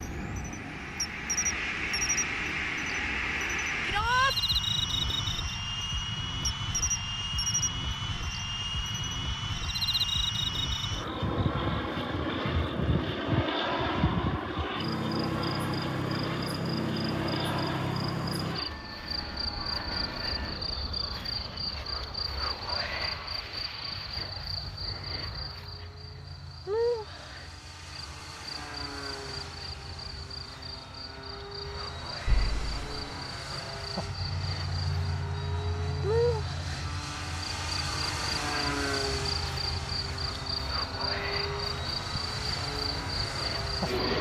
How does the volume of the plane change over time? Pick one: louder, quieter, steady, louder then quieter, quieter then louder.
quieter then louder.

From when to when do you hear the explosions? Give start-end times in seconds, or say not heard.
32.2-33.1.